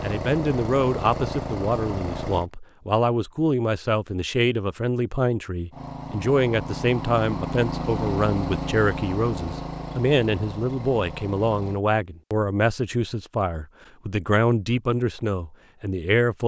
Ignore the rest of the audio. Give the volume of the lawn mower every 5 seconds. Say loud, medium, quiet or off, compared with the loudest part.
loud, loud, medium, off.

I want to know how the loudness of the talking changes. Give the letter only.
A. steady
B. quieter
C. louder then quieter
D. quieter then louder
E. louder
A.